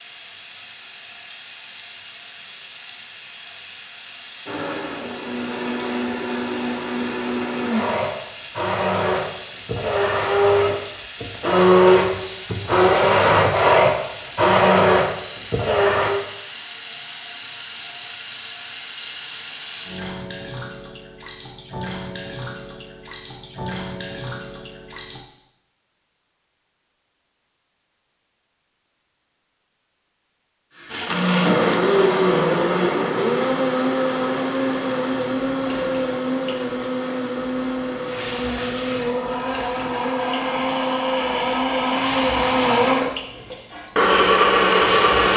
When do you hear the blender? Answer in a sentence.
You can hear the blender from 4.5 to 16.1 s and from 30.9 to 45.3 s.